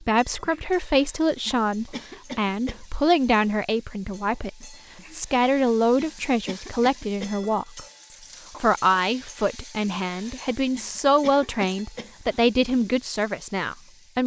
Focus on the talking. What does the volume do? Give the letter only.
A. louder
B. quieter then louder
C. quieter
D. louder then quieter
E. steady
E.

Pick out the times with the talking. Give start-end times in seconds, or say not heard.
0.0-14.2.